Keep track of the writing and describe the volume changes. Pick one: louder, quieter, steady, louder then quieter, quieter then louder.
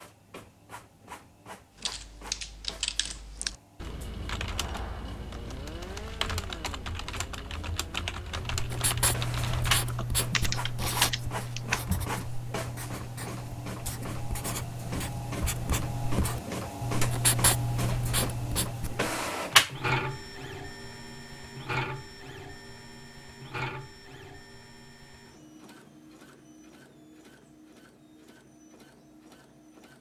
quieter then louder.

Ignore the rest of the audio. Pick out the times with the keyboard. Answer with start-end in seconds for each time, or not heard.
1.8-12.1.